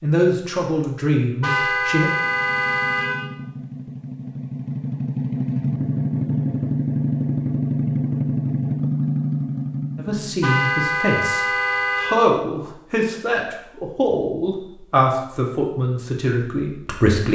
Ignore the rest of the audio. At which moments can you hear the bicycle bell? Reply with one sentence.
The bicycle bell can't be heard in this clip.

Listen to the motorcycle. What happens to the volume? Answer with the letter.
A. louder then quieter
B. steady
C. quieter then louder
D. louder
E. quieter
D.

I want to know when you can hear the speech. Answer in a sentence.
You can hear the speech from 0.0 to 2.1 s and from 9.9 to 17.3 s.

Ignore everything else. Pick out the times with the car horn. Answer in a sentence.
You can hear the car horn from 1.4 to 3.3 s and from 10.4 to 12.3 s.